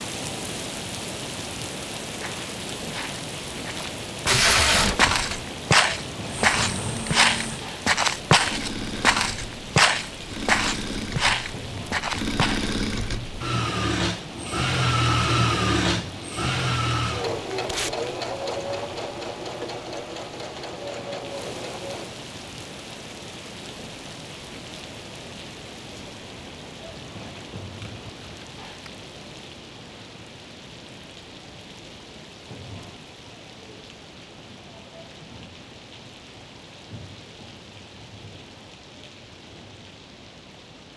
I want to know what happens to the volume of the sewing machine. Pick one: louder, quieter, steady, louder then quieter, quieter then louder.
louder then quieter.